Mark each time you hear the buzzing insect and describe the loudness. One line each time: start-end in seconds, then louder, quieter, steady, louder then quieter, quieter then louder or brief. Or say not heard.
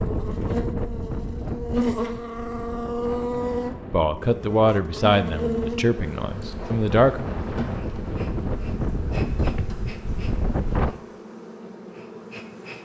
0.0-12.8 quieter.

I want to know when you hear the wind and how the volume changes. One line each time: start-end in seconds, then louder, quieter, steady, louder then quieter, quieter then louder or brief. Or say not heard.
0.0-10.9 quieter then louder.